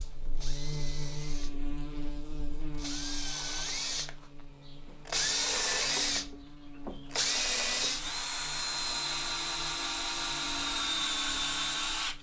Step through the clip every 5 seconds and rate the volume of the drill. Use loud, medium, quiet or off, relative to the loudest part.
medium, loud, loud.